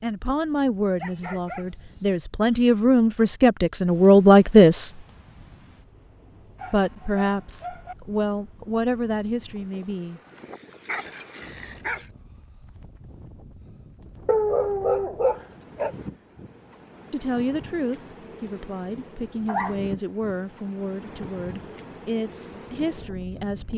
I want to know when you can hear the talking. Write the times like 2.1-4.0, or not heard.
0.0-5.0, 6.7-10.2, 17.1-23.7.